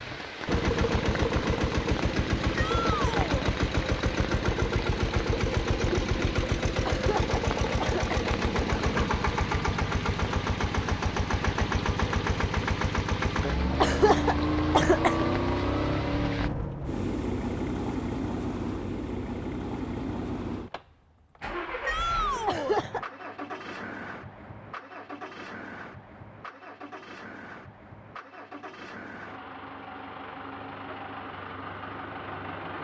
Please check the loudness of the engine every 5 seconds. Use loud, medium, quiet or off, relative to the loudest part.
loud, loud, loud, loud, medium, quiet, medium.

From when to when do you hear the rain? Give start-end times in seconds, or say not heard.
0.0-16.5.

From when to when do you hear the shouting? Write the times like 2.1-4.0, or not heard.
2.5-3.5, 21.9-22.8.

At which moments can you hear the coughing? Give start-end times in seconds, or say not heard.
6.8-8.3, 13.8-15.2, 22.4-23.1.